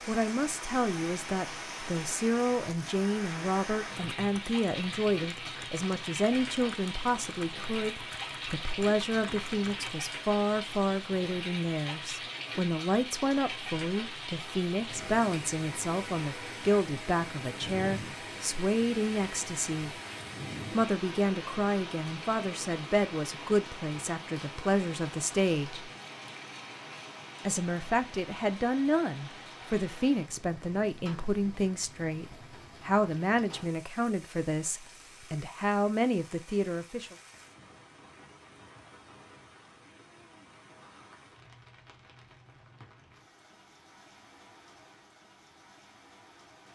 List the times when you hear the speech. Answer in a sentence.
You can hear the speech from 0.1 to 19.9 s, from 20.7 to 25.9 s and from 27.4 to 37.1 s.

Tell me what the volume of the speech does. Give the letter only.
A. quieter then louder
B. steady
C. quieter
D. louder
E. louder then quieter
B.